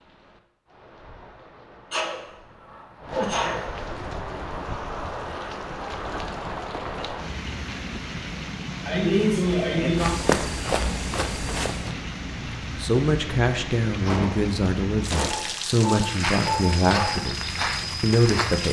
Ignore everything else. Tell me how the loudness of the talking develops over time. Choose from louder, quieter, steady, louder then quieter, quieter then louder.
steady.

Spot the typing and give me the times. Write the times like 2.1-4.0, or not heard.
not heard.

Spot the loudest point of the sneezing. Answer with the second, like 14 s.
9 s.